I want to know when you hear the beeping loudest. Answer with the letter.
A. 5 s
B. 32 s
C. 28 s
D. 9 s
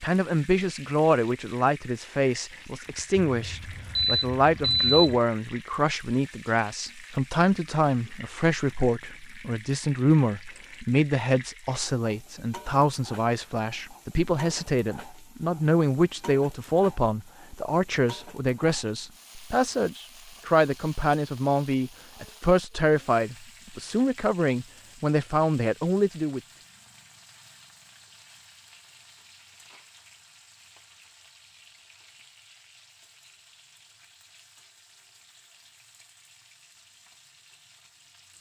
A.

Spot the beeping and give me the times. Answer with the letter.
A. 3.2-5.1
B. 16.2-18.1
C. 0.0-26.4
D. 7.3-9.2
A.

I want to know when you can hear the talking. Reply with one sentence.
The talking can be heard from 0.0 to 26.4 s.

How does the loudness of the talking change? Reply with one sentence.
The loudness of the talking stays about the same.